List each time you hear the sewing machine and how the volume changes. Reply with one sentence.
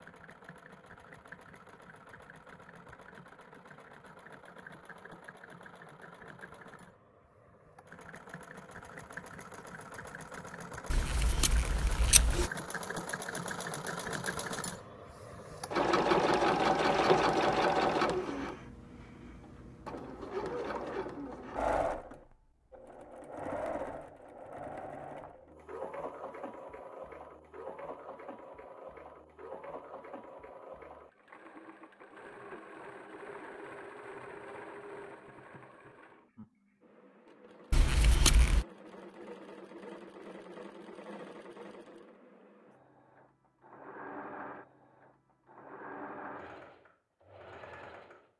The sewing machine can be heard from 0.0 to 48.3 s, getting louder then quieter.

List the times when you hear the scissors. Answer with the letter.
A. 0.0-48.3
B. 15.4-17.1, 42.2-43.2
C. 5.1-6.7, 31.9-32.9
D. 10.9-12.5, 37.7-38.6
D.